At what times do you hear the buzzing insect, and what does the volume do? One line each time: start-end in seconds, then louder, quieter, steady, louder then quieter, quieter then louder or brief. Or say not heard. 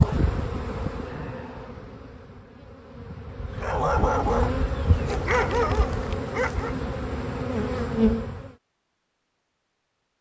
0.0-8.5 quieter then louder.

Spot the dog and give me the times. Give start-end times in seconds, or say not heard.
3.6-6.8.